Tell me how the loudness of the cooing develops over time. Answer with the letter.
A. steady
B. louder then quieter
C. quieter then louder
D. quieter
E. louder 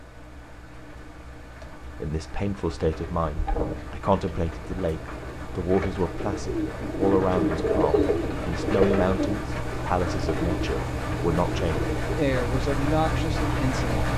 B.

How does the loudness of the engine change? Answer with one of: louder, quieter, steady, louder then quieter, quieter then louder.
louder.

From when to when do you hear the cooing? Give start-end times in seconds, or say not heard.
2.8-12.1.